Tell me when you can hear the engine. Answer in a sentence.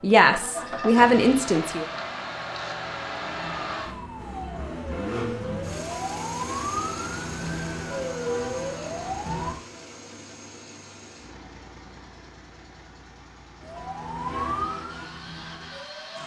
You can hear the engine from 0.2 to 16.2 s.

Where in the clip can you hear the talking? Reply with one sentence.
The talking can be heard from 0.0 to 1.9 s.